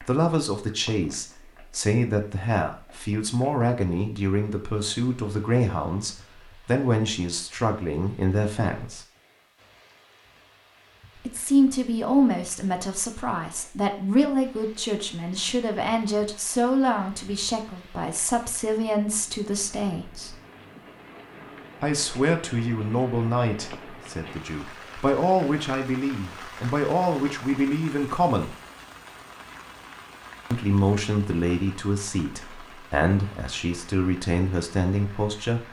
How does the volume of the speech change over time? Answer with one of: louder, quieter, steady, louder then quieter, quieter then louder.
steady.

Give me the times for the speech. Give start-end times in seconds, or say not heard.
0.0-9.1, 11.2-20.4, 21.8-28.6, 30.5-35.6.